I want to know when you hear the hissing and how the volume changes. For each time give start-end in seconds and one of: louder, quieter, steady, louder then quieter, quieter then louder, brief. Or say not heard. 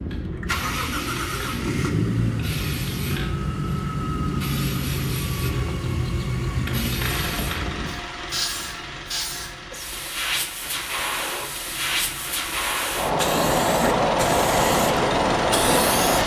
0.0-16.2 louder.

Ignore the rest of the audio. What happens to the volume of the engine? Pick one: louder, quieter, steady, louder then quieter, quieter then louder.
quieter then louder.